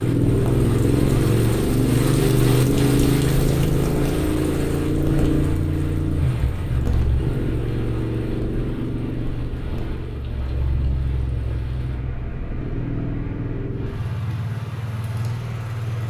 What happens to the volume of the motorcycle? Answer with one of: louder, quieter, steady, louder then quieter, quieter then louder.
quieter.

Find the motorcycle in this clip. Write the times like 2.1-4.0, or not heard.
0.0-16.0.